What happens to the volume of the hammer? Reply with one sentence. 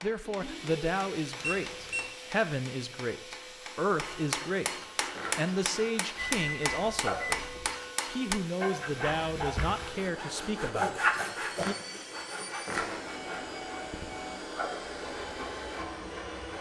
The volume of the hammer goes up.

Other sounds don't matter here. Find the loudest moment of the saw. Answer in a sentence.
The volume of the saw peaks at 11 seconds.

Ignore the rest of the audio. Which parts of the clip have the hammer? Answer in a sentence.
The hammer can be heard from 0.0 to 8.4 s.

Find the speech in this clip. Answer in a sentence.
The speech can be heard from 0.0 to 7.5 s and from 8.1 to 11.8 s.